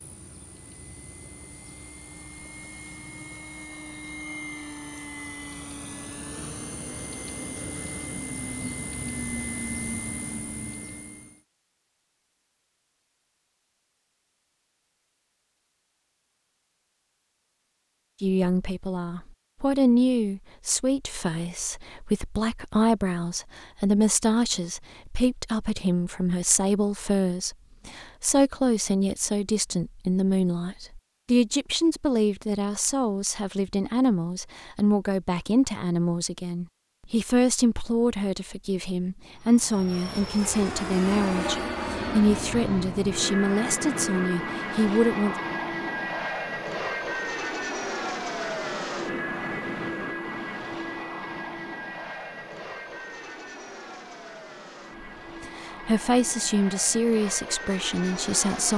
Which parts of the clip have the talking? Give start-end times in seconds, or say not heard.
18.2-45.4, 55.4-58.7.